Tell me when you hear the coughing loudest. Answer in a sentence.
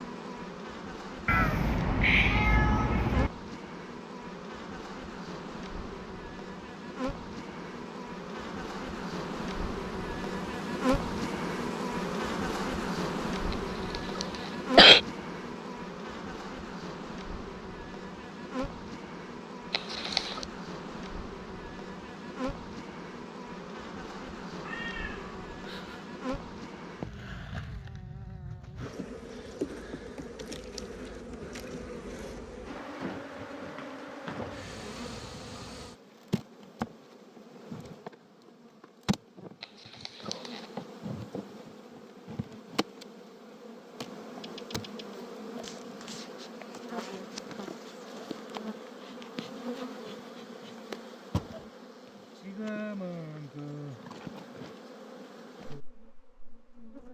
The volume of the coughing peaks at 15 seconds.